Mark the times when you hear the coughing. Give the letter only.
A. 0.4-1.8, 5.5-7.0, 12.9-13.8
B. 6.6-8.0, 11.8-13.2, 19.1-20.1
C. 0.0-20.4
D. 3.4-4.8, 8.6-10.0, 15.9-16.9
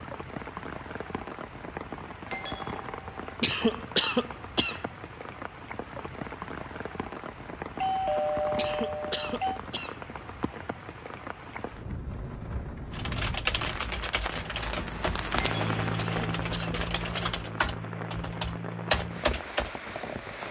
D.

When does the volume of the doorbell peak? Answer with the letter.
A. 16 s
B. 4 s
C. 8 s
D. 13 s
C.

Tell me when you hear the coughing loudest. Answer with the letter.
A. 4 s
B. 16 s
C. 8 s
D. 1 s
A.